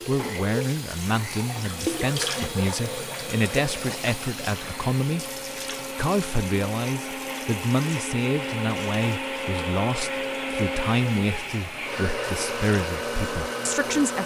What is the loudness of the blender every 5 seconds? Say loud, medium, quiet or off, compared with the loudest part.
medium, loud, loud.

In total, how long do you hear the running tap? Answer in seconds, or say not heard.
14 s.